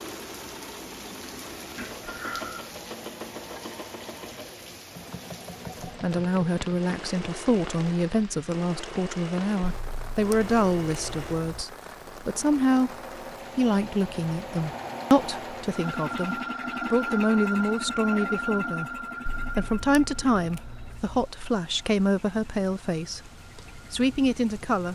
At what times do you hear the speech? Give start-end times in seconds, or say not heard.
5.8-12.9, 13.6-24.8.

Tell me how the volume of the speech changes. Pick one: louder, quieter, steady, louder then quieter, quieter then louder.
steady.